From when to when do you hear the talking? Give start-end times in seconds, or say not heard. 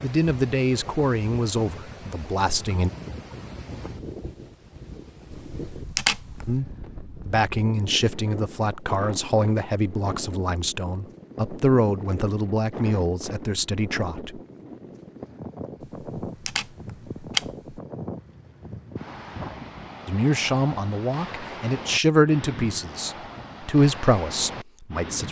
0.0-2.9, 6.5-14.4, 20.1-25.2.